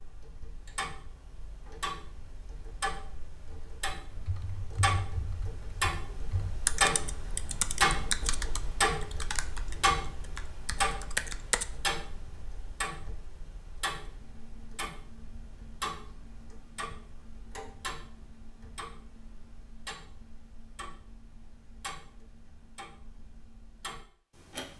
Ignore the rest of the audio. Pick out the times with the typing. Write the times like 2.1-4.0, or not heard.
4.1-11.7.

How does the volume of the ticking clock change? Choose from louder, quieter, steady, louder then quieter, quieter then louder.
louder then quieter.